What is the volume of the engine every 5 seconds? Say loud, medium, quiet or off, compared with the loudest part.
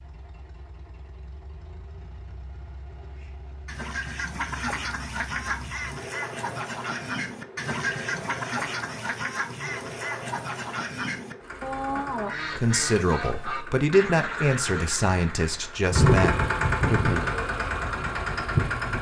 quiet, quiet, quiet, loud.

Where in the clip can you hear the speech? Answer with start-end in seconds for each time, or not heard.
12.6-17.2.